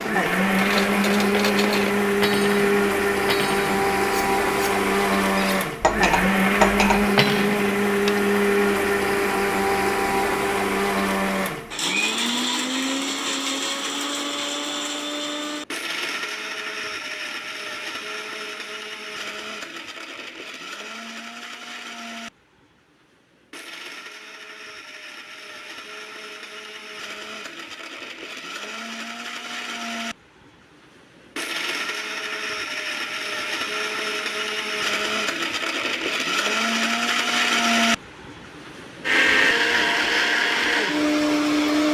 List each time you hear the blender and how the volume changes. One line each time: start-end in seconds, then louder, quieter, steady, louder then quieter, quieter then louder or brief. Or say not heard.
0.0-41.8 quieter then louder.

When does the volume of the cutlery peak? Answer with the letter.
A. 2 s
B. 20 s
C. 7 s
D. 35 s
C.